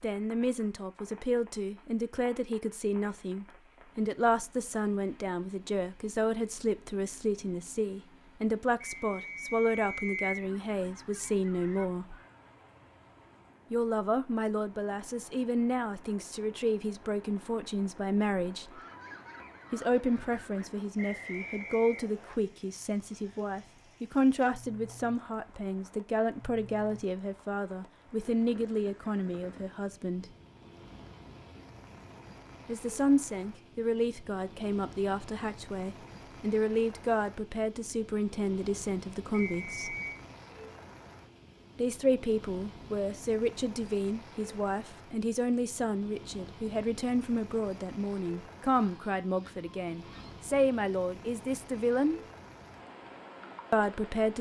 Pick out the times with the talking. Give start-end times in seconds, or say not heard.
0.0-12.2, 13.7-18.8, 19.7-30.2, 32.6-40.0, 41.8-52.2, 53.7-54.3.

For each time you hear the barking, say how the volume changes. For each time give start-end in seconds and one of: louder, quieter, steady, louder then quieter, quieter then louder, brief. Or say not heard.
not heard.